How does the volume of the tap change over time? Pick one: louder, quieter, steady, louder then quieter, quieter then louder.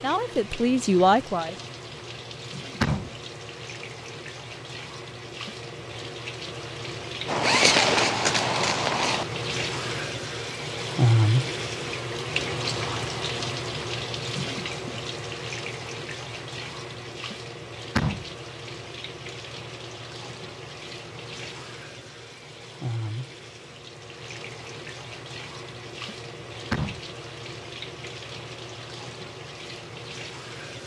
louder then quieter.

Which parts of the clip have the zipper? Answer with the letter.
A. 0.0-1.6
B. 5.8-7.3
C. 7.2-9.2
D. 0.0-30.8
C.